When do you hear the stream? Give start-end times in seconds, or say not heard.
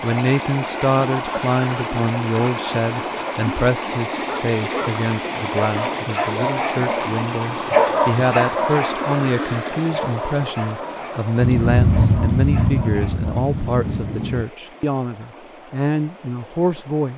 0.0-17.1.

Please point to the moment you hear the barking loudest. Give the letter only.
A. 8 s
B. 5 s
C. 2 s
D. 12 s
A.